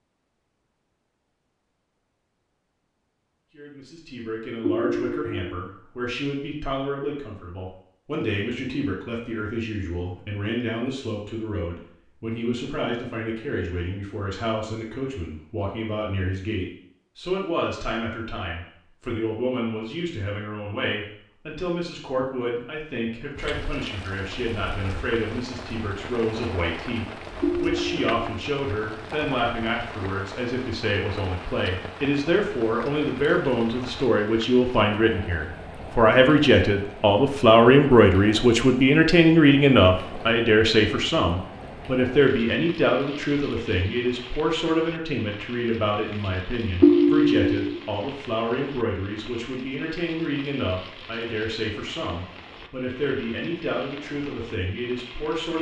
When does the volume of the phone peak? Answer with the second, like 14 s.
47 s.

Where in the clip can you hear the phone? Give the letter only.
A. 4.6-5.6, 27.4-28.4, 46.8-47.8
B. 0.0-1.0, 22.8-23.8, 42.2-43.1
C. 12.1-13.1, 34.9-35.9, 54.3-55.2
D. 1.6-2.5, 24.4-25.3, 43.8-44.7
A.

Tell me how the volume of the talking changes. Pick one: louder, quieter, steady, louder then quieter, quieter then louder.
louder then quieter.